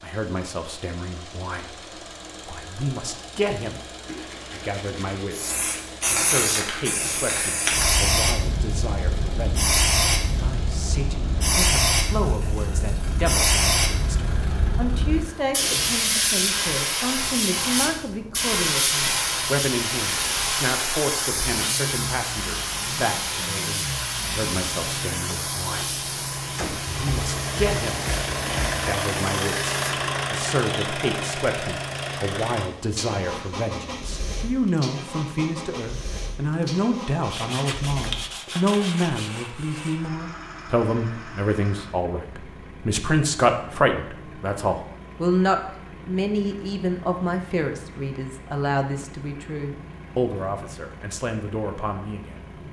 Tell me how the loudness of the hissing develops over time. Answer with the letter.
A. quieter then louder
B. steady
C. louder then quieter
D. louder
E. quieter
E.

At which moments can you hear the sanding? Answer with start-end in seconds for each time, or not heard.
4.0-5.3, 26.9-28.9, 37.3-39.3.